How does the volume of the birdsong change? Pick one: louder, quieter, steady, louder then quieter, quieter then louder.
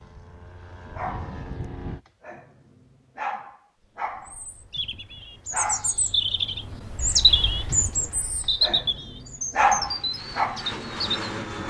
louder then quieter.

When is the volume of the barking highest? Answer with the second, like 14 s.
10 s.